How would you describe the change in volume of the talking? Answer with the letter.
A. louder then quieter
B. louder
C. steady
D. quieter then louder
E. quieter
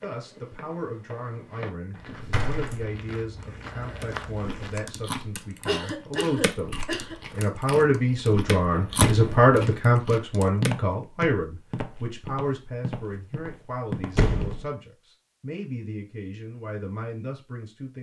A.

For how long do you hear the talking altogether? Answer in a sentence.
You can hear the talking for 18 seconds altogether.